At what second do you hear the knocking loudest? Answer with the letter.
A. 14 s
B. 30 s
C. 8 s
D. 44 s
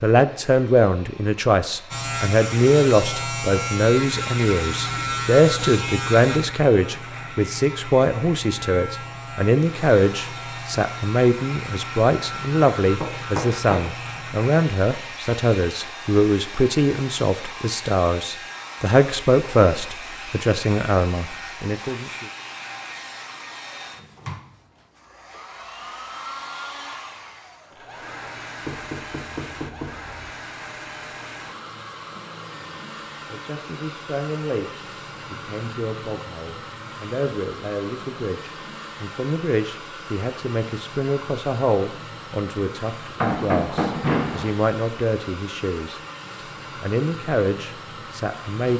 D.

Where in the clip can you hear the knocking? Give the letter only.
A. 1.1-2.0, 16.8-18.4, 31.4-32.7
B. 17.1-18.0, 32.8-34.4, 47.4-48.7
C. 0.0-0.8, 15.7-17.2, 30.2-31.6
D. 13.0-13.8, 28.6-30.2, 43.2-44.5
D.